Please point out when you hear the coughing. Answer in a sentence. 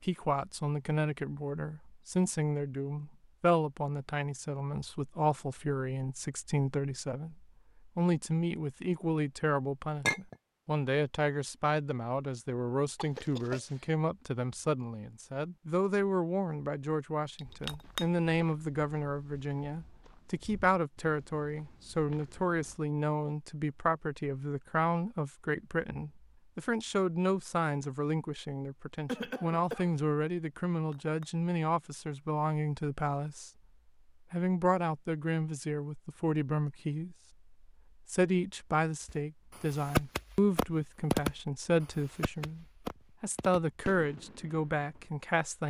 The coughing can be heard from 12.9 to 13.8 s and from 29.1 to 30.0 s.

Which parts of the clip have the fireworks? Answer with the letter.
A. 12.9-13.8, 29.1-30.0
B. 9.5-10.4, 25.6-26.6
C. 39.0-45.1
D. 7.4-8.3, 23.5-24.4
C.